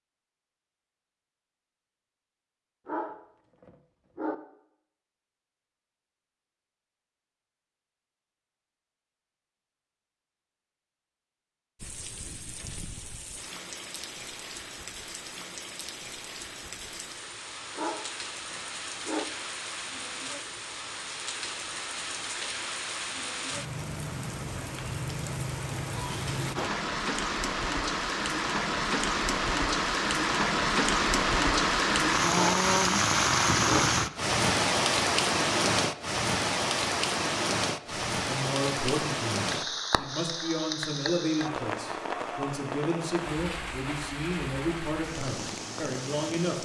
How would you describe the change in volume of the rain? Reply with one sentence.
The loudness of the rain goes up, then down.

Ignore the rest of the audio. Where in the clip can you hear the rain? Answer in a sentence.
The rain can be heard from 11.8 to 46.5 s.